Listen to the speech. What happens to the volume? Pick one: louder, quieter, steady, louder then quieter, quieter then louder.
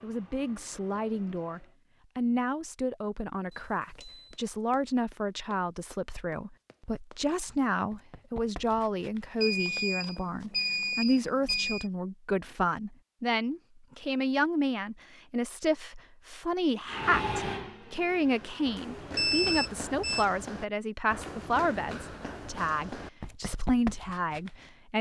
steady.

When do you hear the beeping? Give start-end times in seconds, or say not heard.
3.5-4.3, 9.4-11.8, 19.1-20.2.